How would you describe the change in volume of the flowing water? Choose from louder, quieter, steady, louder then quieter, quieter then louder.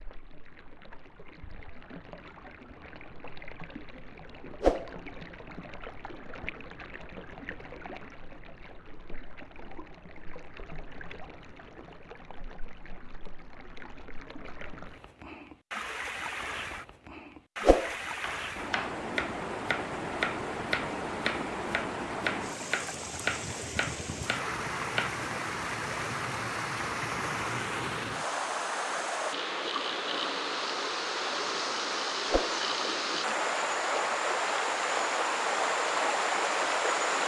louder.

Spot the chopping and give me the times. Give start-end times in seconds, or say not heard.
18.2-25.2.